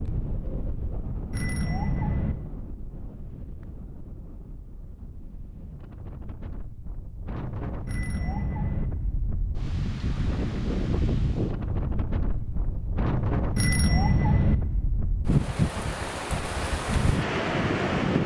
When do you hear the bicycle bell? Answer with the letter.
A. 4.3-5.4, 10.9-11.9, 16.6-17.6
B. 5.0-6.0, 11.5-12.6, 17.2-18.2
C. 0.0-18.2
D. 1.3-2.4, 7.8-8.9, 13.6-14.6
D.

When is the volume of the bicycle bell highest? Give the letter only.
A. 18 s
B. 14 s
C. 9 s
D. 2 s
B.